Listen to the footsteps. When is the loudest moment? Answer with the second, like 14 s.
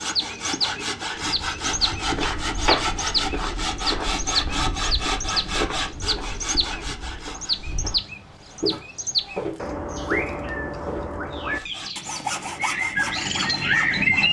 3 s.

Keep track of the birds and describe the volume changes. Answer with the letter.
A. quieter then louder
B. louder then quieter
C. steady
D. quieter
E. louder
E.